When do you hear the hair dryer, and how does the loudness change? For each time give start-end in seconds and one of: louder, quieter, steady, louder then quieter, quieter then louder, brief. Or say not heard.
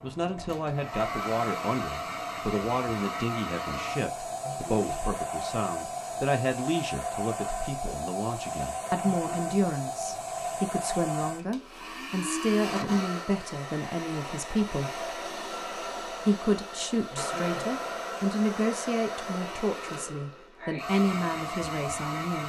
0.0-22.4 steady.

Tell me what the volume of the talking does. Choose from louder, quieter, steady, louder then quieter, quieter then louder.
steady.